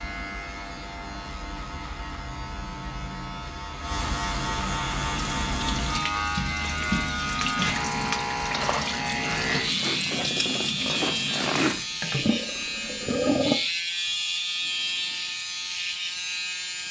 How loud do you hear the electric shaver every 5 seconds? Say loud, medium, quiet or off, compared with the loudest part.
medium, loud, loud, loud.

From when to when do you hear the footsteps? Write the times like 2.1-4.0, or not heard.
not heard.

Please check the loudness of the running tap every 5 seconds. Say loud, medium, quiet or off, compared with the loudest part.
off, medium, loud, off.